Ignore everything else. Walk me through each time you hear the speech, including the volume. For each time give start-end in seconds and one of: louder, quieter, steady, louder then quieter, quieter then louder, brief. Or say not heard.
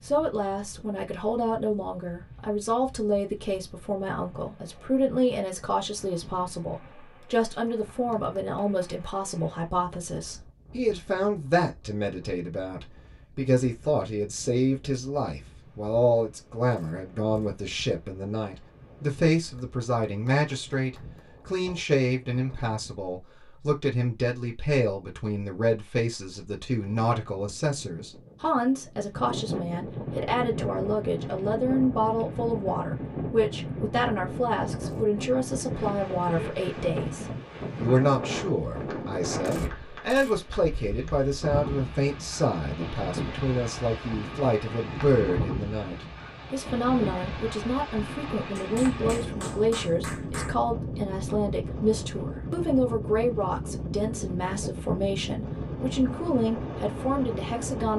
0.0-57.9 steady.